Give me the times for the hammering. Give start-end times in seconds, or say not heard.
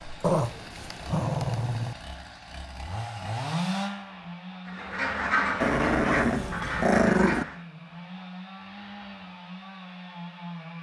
not heard.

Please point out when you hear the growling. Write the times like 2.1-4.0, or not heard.
0.2-1.9, 5.6-7.5.